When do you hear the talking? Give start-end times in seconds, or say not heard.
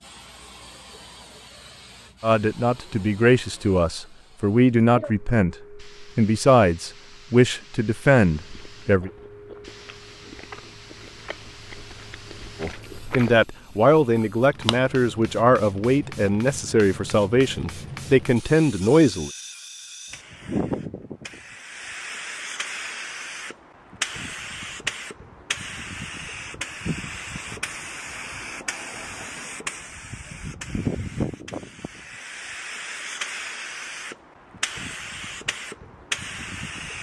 2.2-9.1, 12.6-19.3.